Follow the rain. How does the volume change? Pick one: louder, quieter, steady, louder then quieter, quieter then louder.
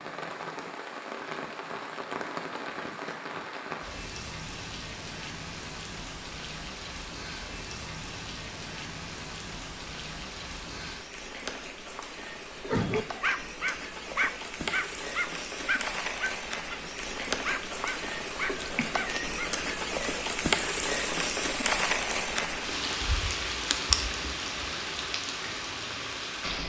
louder.